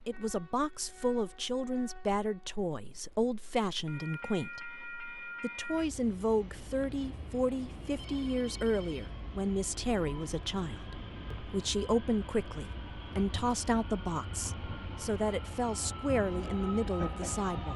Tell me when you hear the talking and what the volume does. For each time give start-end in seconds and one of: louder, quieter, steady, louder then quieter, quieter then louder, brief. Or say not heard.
0.1-17.7 steady.